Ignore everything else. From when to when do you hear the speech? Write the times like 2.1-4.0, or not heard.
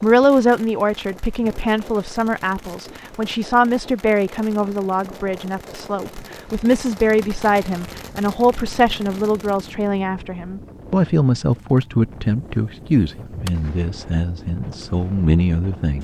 0.0-15.9.